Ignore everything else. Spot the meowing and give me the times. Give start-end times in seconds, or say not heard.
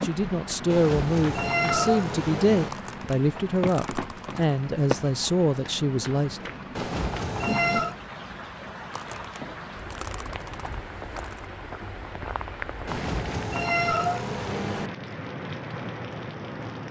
0.7-2.7, 6.8-8.0, 12.8-14.9.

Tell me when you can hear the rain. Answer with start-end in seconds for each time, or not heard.
0.0-16.8.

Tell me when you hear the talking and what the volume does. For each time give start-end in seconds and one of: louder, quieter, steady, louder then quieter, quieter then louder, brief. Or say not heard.
0.0-6.4 steady.